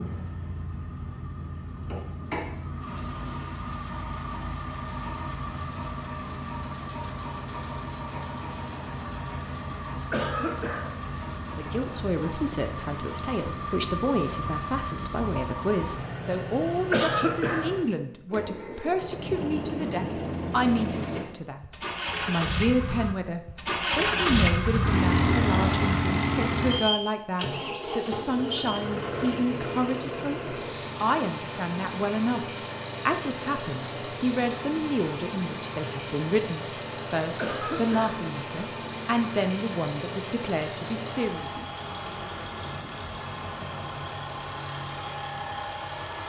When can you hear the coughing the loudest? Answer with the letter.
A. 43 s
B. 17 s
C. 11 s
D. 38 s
B.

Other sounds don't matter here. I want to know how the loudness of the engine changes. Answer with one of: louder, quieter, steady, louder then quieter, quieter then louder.
louder then quieter.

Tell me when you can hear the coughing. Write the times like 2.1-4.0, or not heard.
10.1-10.9, 16.9-17.8, 37.4-38.2.